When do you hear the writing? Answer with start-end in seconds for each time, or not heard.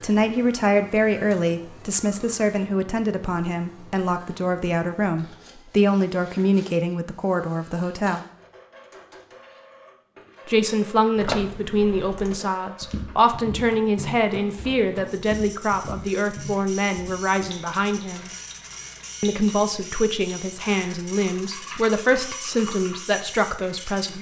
not heard.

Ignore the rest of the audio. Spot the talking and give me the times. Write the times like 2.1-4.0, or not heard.
0.0-8.2, 10.4-18.3, 19.2-24.1.